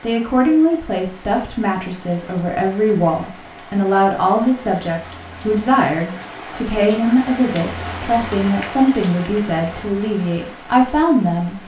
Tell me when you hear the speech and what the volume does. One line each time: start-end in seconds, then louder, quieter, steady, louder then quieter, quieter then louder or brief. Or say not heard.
0.0-11.6 steady.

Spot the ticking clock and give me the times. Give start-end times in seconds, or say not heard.
not heard.